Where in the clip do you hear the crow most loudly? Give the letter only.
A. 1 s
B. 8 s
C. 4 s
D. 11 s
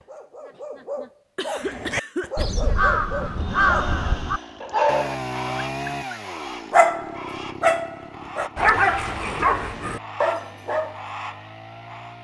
C.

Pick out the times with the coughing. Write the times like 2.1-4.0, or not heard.
1.4-2.7.